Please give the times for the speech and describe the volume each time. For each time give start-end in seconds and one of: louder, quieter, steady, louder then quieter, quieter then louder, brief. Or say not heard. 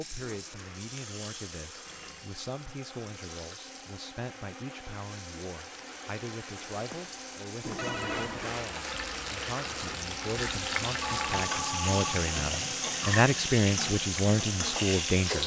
0.0-15.4 louder.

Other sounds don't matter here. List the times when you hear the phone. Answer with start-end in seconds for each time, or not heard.
1.9-2.5, 7.7-8.6, 11.0-12.2.